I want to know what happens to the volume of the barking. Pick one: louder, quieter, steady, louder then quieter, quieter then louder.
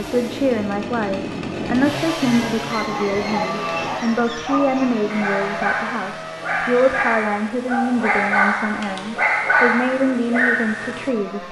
louder.